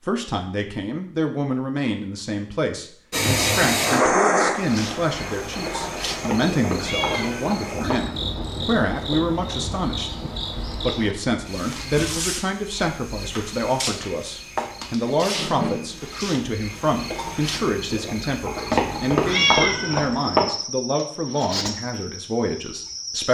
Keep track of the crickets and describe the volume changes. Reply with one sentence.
The volume of the crickets stays about the same.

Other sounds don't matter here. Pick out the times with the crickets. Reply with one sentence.
The crickets can be heard from 4.5 to 23.3 s.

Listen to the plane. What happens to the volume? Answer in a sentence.
The volume of the plane goes down.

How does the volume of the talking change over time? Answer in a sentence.
The loudness of the talking stays about the same.